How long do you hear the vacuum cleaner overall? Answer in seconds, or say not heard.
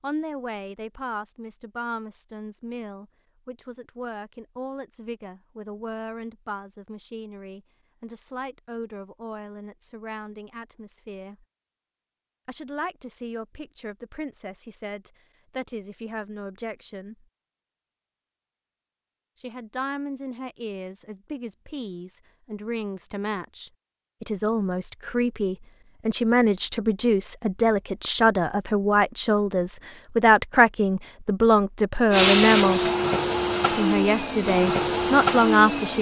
4 s.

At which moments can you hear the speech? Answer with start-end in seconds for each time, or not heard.
0.0-11.4, 12.4-17.2, 19.4-32.8, 33.7-35.9.